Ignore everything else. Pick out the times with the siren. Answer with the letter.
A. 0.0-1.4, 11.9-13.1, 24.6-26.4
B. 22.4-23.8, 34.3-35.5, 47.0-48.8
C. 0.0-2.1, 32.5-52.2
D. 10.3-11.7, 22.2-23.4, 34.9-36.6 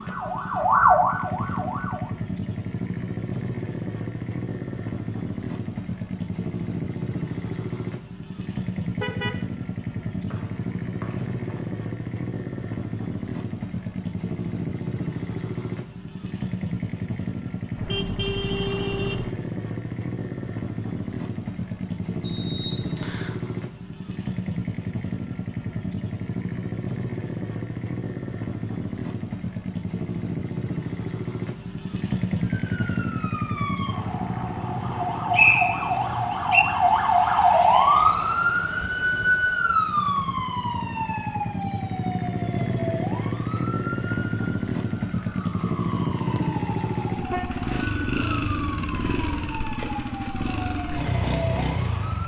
C.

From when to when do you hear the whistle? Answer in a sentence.
The whistle can be heard from 10.3 to 11.7 s, from 22.2 to 23.4 s and from 34.9 to 36.6 s.